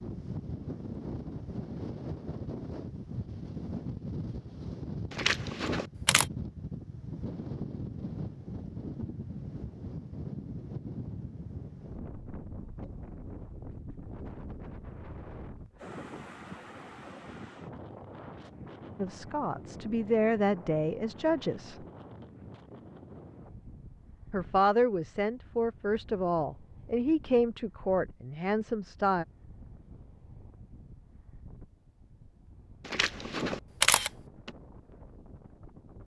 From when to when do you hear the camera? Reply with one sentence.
You can hear the camera from 5.1 to 6.2 s and from 32.9 to 34.5 s.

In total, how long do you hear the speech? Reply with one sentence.
The speech can be heard for 8 seconds in total.